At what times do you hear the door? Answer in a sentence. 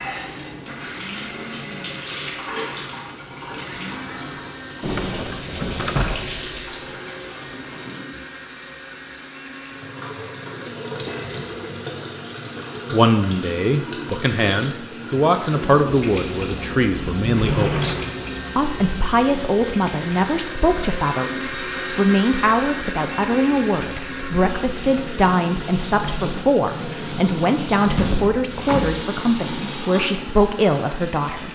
The door can be heard from 4.8 to 6.5 s, from 17.0 to 18.1 s and from 27.9 to 29.1 s.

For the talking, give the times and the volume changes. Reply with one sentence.
The talking can be heard from 12.9 to 31.4 s, at a steady volume.